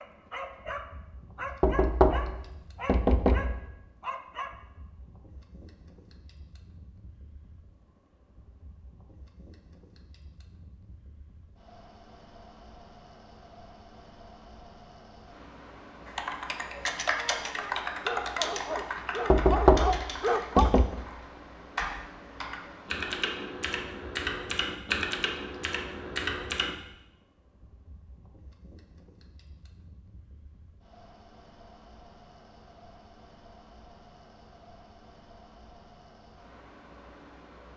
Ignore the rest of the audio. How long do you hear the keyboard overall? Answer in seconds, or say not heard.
11 s.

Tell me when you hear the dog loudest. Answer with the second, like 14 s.
20 s.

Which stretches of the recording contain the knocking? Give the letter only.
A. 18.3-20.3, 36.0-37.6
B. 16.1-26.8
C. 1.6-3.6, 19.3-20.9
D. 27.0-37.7
C.